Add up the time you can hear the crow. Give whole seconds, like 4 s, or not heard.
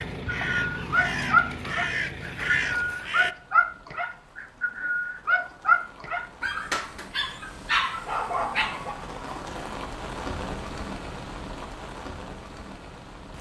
3 s.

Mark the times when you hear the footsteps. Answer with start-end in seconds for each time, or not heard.
not heard.